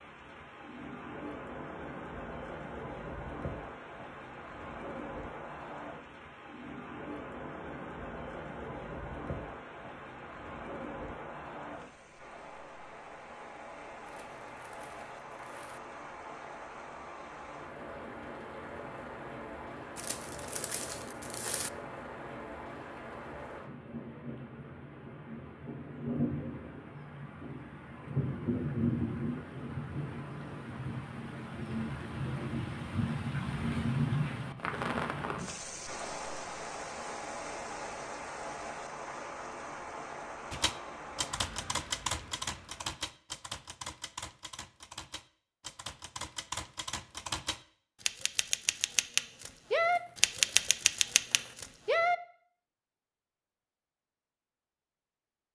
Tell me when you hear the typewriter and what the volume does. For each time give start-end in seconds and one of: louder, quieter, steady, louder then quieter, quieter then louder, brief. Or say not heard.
40.5-52.1 quieter then louder.